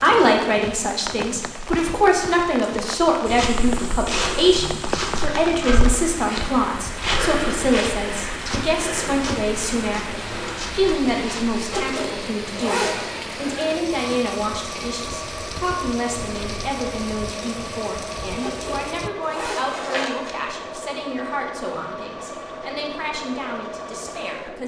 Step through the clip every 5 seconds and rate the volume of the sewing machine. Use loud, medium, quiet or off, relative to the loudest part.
off, off, loud, loud, loud.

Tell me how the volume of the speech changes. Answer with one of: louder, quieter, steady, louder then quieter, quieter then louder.
quieter.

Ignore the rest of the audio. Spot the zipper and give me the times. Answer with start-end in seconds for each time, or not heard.
4.5-5.5, 11.6-13.1, 18.4-20.4.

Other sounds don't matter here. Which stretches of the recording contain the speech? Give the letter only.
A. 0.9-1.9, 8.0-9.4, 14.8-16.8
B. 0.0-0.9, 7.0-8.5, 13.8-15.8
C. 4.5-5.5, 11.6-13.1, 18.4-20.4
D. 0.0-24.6
D.